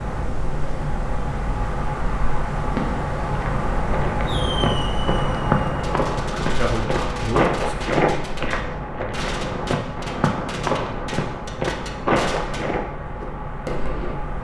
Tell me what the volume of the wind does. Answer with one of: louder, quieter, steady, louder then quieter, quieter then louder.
quieter.